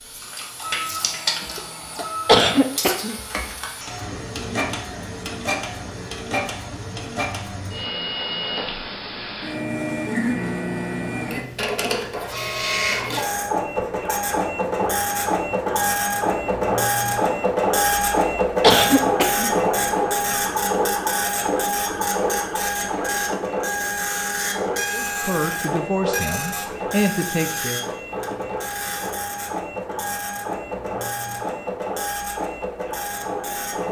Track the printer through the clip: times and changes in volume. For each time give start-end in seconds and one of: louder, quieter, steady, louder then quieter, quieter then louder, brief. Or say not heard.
0.0-33.8 louder then quieter.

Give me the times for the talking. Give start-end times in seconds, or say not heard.
24.9-27.9.